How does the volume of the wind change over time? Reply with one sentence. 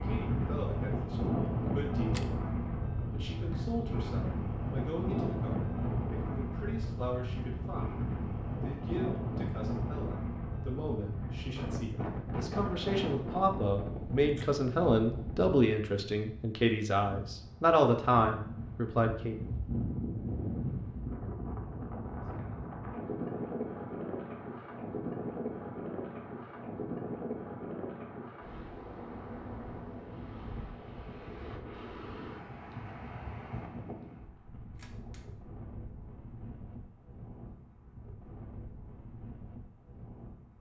The loudness of the wind goes down.